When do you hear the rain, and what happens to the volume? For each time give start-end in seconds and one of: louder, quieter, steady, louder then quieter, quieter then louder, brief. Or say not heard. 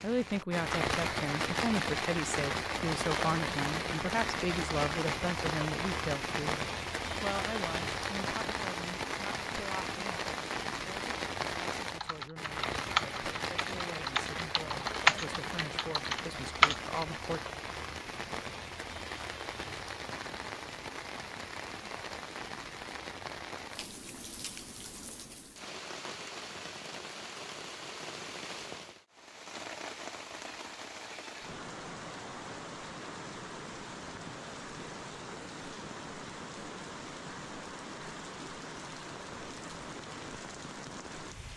0.0-41.5 quieter.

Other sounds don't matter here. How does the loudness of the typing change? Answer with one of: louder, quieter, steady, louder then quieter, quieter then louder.
quieter then louder.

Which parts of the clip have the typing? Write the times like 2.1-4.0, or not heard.
11.8-17.1.